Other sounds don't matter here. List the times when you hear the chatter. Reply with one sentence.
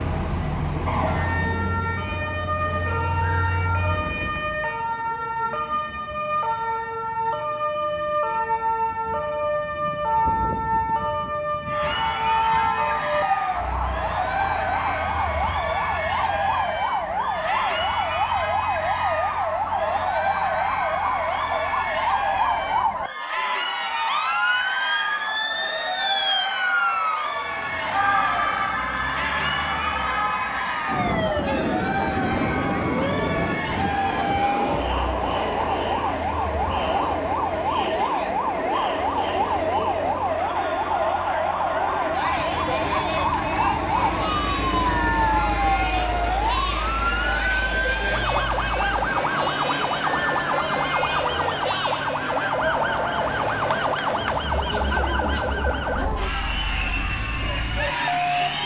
The chatter can be heard from 11.7 to 58.6 s.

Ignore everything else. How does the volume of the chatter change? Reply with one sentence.
The loudness of the chatter stays about the same.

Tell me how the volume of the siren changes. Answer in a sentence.
The loudness of the siren stays about the same.